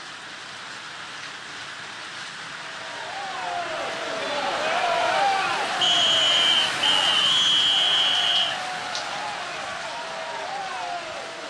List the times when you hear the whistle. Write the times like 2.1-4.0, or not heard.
5.8-8.6.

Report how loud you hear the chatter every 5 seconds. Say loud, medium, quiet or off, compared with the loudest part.
loud, loud, medium.